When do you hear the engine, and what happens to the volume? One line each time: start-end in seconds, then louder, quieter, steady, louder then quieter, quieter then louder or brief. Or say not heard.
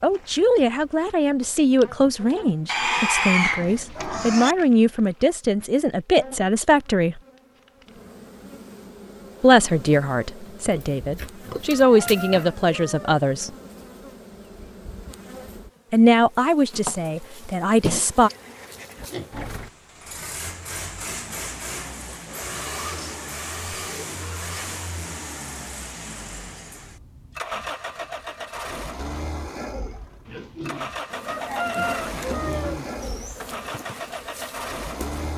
18.9-35.3 steady.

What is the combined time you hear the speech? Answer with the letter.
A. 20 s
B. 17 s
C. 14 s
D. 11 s
C.